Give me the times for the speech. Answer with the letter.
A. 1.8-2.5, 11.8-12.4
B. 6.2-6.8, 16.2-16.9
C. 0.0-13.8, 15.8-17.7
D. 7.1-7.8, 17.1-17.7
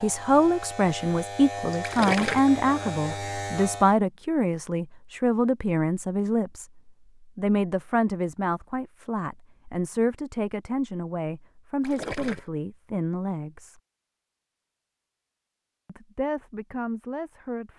C.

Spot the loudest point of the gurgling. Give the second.
2 s.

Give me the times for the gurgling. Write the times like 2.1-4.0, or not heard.
1.8-2.5, 11.8-12.4.